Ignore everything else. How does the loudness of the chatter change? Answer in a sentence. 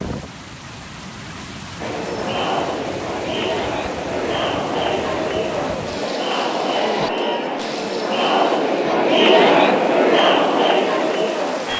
The volume of the chatter goes up.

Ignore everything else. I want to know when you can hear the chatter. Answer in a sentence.
The chatter can be heard from 1.8 to 11.7 s.